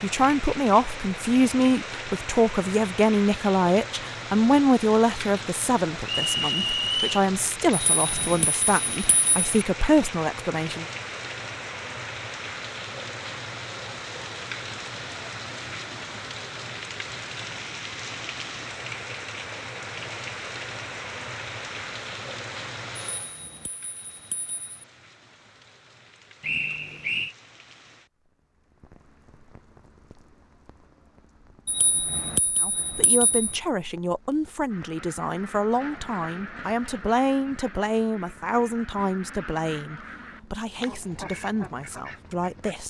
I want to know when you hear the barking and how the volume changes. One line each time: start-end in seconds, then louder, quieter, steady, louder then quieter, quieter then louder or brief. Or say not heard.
not heard.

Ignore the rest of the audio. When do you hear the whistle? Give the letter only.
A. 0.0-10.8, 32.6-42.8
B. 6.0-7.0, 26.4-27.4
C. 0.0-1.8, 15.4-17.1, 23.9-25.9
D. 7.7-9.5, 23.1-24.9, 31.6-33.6
B.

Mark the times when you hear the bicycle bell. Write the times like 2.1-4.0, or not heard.
7.7-9.5, 23.1-24.9, 31.6-33.6.